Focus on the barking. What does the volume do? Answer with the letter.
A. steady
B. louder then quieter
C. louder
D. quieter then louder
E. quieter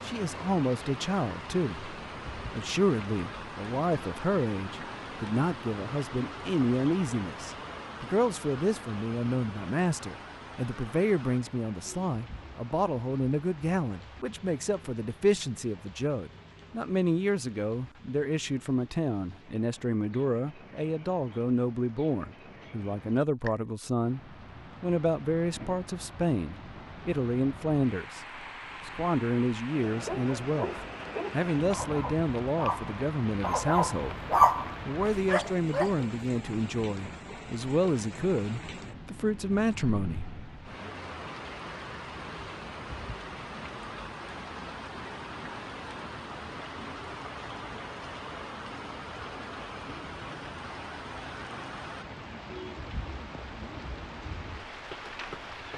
B.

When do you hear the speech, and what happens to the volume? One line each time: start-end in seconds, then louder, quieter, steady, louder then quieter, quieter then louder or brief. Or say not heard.
0.0-28.2 steady
28.9-30.7 brief
31.3-40.9 steady.